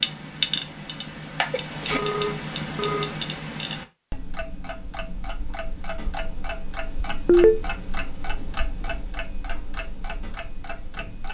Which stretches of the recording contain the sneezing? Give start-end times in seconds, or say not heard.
1.5-2.0.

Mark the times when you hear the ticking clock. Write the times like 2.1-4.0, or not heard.
0.0-11.2.